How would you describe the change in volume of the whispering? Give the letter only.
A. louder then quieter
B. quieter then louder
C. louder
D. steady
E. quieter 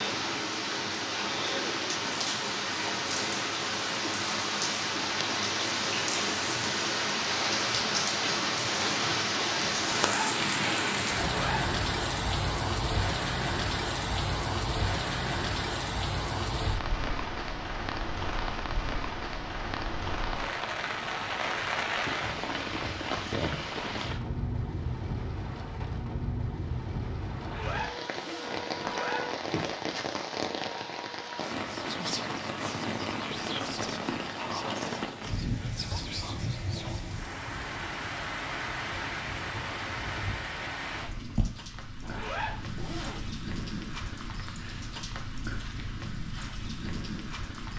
B.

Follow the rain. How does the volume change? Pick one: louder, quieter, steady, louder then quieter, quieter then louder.
quieter.